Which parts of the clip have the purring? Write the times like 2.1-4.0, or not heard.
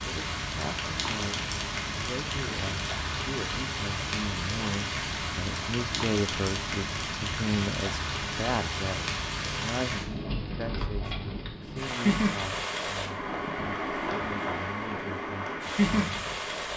not heard.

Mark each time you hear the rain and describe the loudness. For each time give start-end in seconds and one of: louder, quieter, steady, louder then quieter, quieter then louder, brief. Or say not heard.
0.0-16.7 steady.